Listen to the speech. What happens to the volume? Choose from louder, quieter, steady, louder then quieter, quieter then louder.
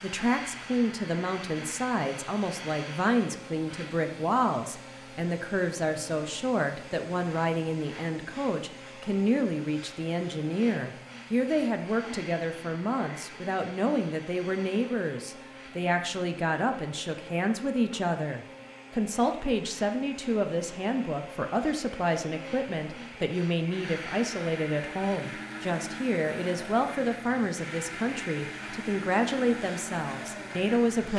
steady.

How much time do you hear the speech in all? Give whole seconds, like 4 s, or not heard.
31 s.